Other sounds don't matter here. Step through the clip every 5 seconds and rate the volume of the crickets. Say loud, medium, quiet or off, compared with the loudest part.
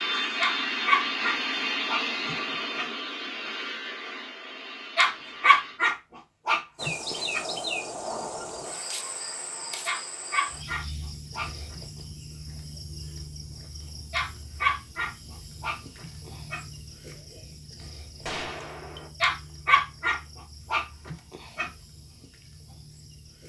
off, loud, medium, quiet, quiet.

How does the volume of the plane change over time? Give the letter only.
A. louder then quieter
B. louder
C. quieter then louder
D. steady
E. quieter
E.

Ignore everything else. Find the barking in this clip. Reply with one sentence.
The barking can be heard from 0.3 to 2.9 s, from 5.0 to 7.5 s, from 9.8 to 12.0 s, from 14.1 to 16.6 s and from 19.2 to 21.7 s.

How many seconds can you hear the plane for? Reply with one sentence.
The plane can be heard for 6 seconds in total.